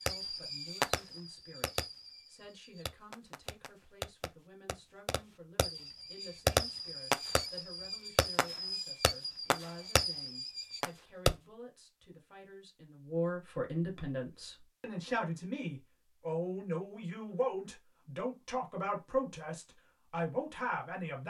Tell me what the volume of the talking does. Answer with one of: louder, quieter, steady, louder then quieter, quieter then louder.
louder.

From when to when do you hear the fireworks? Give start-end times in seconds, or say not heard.
0.0-11.3.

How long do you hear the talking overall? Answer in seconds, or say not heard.
21 s.